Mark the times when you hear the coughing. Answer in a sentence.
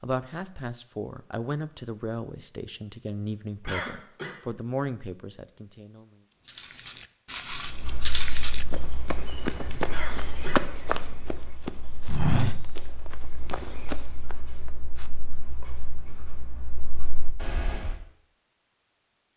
You can hear the coughing from 3.6 to 4.3 s and from 9.9 to 10.6 s.